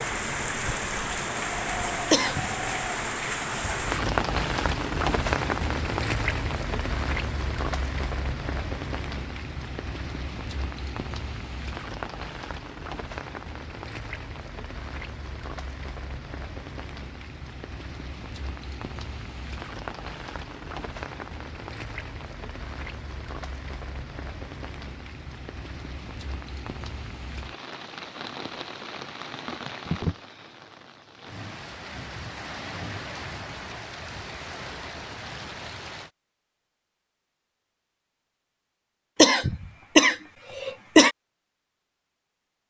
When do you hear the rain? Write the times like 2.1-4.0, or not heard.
0.0-36.1.